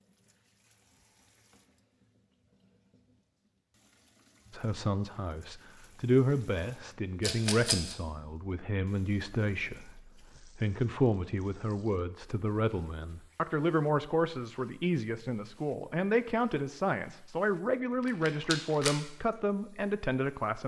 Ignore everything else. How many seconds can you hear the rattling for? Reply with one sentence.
The rattling can be heard for 2 seconds in total.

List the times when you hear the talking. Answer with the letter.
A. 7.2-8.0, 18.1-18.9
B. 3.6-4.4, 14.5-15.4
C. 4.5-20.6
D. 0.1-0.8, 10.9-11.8
C.